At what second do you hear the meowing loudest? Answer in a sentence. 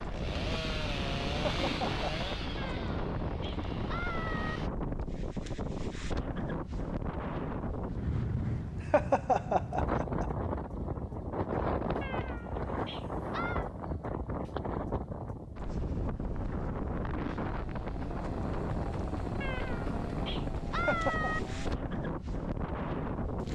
The loudest moment of the meowing is at 21 seconds.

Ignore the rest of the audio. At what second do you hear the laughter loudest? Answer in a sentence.
The loudest moment of the laughter is at 9 seconds.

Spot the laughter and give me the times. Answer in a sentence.
You can hear the laughter from 1.3 to 2.3 s, from 8.8 to 10.2 s and from 20.8 to 21.3 s.